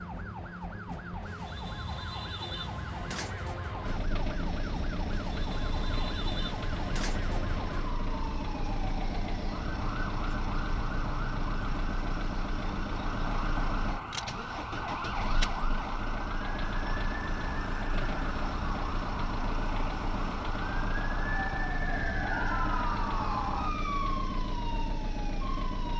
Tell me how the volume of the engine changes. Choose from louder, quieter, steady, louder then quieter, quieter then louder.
steady.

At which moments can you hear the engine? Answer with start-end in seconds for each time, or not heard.
3.8-25.9.